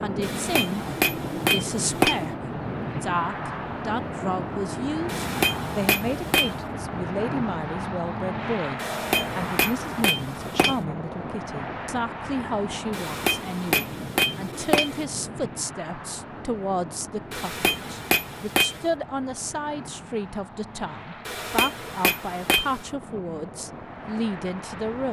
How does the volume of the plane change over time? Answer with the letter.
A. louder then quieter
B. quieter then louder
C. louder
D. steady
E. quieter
E.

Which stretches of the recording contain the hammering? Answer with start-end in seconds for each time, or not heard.
0.2-2.2, 5.0-6.5, 8.8-10.8, 12.9-15.1, 17.3-18.9, 21.2-22.8.